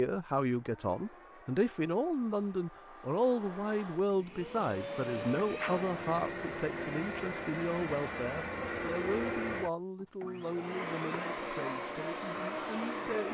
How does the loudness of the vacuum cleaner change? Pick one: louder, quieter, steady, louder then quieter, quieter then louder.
louder.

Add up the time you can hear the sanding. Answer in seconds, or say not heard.
not heard.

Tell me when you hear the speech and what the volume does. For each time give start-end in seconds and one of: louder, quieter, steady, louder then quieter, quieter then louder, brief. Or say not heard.
0.0-13.2 quieter.